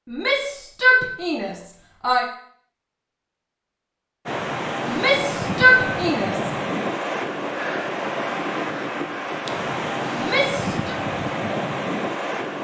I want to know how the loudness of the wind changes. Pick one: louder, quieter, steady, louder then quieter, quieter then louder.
steady.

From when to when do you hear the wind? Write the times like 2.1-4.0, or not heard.
4.2-12.5.